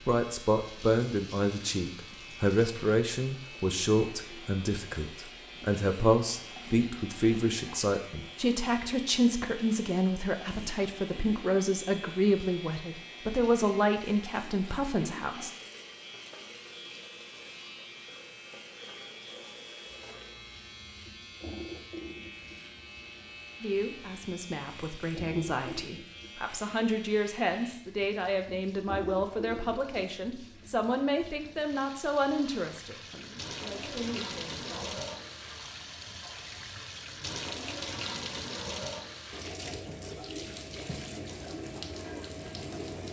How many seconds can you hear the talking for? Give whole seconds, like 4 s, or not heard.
27 s.